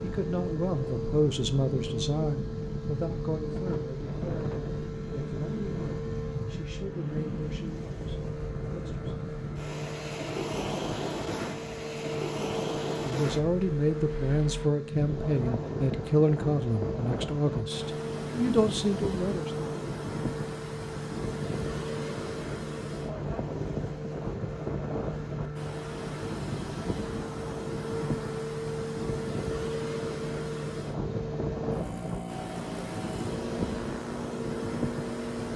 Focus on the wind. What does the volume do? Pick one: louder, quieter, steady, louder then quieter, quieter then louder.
steady.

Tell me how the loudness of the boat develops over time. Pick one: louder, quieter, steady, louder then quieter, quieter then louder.
steady.